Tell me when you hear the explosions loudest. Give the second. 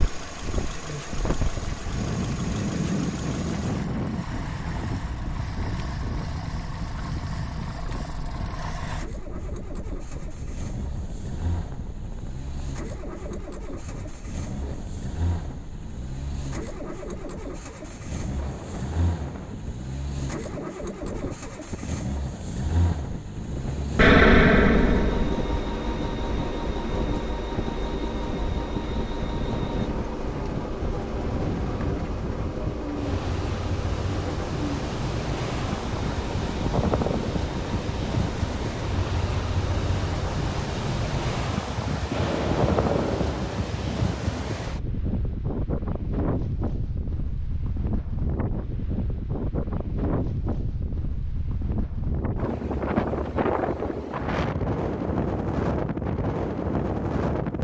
24 s.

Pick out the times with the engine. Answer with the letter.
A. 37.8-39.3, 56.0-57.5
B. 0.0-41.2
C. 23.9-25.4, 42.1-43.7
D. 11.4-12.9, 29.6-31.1
B.